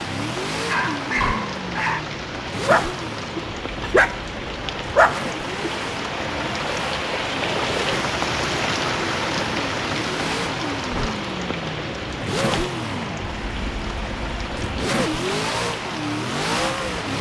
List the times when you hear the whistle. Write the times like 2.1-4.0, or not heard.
not heard.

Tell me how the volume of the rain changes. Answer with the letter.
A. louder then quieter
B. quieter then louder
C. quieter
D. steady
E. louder
A.